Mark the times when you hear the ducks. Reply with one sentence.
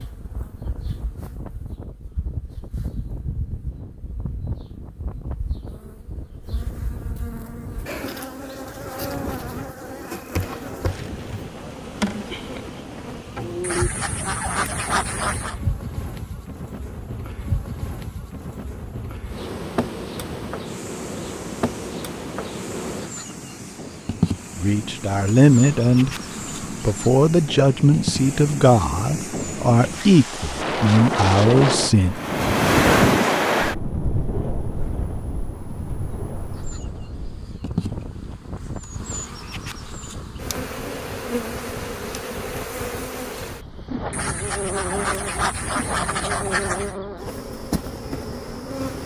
You can hear the ducks from 13.6 to 15.6 s and from 44.1 to 47.0 s.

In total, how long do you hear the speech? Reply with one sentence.
The speech can be heard for 7 seconds in total.